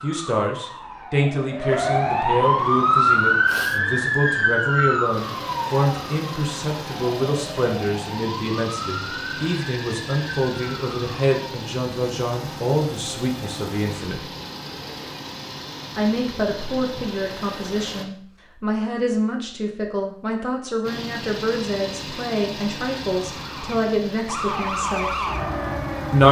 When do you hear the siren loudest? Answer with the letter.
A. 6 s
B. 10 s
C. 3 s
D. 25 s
C.